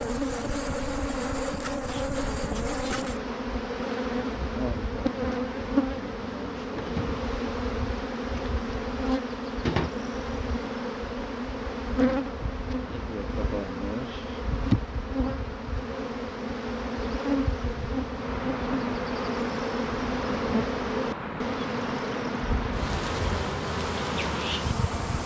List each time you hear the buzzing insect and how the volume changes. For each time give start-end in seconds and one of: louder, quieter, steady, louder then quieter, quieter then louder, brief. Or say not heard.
0.0-25.2 steady.